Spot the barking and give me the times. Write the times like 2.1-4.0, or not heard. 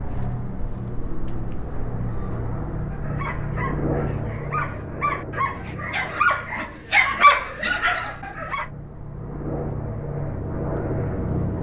2.7-8.7.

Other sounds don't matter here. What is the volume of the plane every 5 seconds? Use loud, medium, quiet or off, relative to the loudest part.
loud, medium, loud.